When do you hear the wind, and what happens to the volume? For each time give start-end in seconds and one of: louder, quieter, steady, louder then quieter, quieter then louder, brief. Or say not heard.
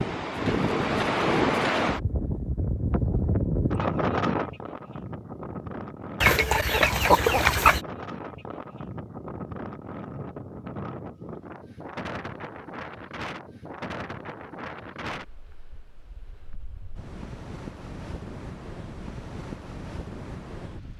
0.0-20.9 quieter.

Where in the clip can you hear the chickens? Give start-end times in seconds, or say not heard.
6.2-7.8.